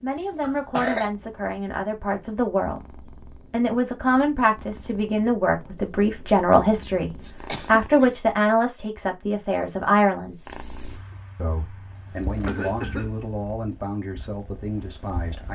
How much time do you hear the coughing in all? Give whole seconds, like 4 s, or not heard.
2 s.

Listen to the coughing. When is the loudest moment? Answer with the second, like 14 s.
1 s.